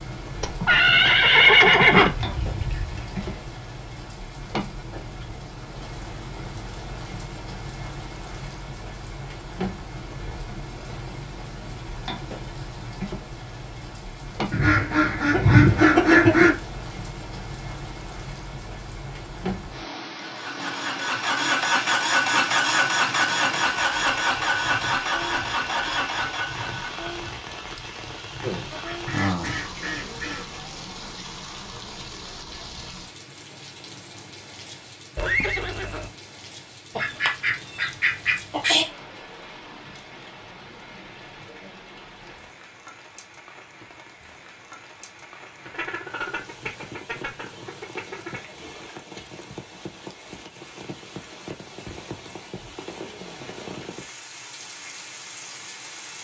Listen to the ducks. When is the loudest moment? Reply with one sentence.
The volume of the ducks peaks at 16 seconds.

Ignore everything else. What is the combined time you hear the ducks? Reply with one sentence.
The ducks can be heard for 10 seconds in total.